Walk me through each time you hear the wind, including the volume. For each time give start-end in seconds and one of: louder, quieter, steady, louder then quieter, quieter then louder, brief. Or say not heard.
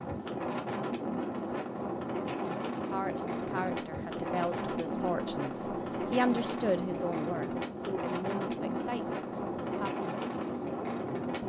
0.0-11.4 steady.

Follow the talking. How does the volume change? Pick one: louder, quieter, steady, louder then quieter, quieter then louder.
louder then quieter.